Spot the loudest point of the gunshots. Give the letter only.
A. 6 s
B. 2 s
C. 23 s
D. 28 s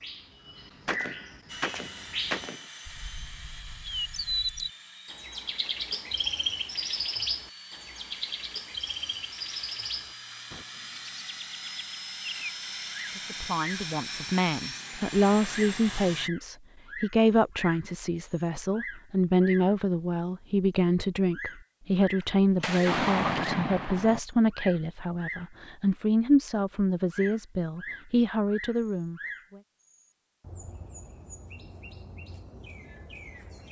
C.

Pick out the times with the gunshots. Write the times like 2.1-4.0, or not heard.
0.8-2.6, 22.6-24.2.